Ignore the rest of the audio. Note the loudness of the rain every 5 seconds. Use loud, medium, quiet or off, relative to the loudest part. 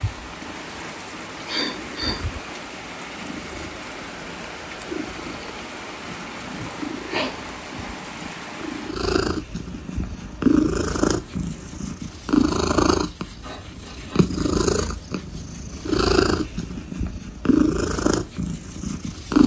loud, loud, quiet, off.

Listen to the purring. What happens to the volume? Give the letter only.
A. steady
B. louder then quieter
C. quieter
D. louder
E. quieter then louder
D.